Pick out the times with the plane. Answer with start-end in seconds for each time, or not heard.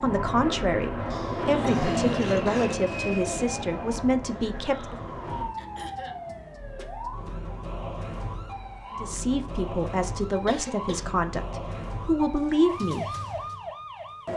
0.0-5.5.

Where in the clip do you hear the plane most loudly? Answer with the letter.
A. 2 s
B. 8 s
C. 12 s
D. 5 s
A.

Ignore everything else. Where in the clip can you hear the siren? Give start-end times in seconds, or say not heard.
0.0-14.3.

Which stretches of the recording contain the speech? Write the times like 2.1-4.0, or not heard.
0.0-5.0, 8.9-13.1.